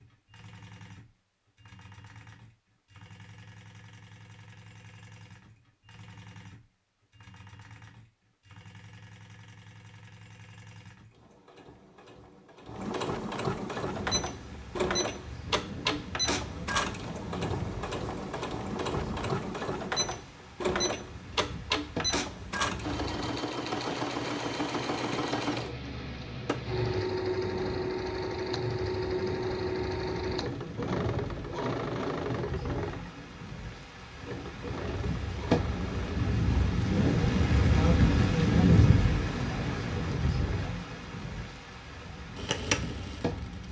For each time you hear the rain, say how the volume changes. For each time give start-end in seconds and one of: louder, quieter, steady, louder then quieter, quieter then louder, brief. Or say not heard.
13.8-43.6 louder.